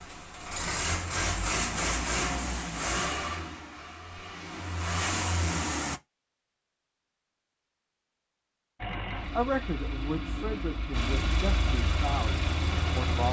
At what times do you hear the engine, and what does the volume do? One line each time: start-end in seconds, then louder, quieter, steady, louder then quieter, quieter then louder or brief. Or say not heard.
0.0-6.0 quieter then louder
8.8-13.2 louder.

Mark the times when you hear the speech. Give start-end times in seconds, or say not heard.
9.3-13.2.